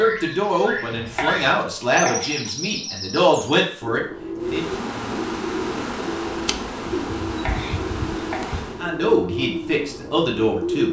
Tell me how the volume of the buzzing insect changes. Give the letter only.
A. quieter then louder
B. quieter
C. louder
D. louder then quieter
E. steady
E.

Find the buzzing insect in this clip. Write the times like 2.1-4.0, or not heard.
4.3-8.8.